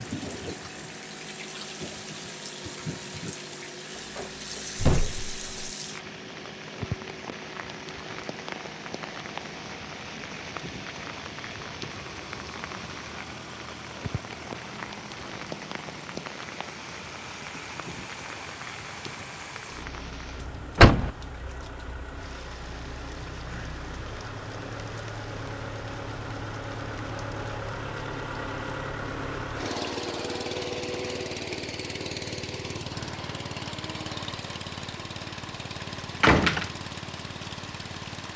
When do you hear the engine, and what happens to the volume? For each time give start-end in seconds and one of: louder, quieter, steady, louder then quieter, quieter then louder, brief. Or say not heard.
0.0-38.3 louder.